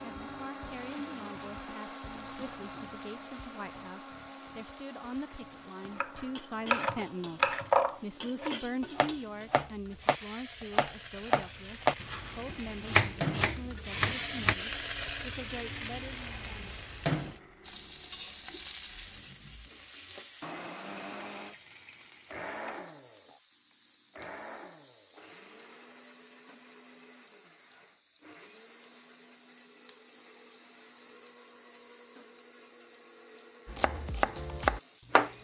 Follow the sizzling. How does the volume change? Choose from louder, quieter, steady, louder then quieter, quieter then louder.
louder then quieter.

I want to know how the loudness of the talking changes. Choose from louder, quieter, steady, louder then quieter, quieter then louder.
louder then quieter.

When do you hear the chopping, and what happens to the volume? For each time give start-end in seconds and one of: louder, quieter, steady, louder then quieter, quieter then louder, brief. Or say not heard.
6.0-14.6 quieter then louder
33.6-35.3 brief.